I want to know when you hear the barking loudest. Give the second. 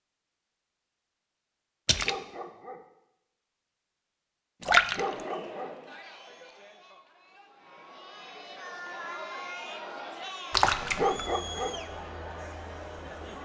11 s.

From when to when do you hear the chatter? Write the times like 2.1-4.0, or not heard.
4.9-13.4.